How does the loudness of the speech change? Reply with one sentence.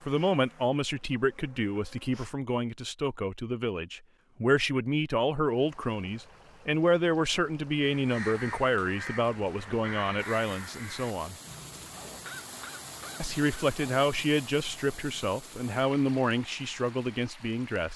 The volume of the speech stays about the same.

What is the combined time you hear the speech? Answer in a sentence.
You can hear the speech for 16 seconds altogether.